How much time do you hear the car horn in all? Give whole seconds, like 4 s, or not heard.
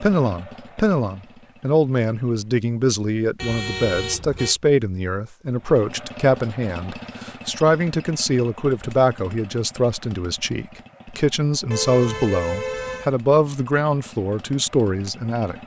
3 s.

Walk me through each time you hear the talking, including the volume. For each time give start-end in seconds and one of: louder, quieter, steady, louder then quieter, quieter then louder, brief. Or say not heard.
0.0-15.6 steady.